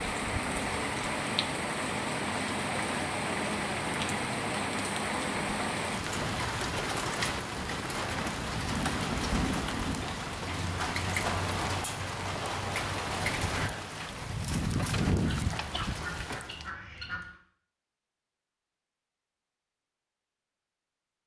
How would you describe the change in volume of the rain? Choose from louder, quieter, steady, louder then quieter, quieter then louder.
steady.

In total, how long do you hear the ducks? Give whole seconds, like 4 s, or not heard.
2 s.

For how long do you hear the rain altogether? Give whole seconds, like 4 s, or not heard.
17 s.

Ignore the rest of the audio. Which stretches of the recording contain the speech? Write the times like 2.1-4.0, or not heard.
not heard.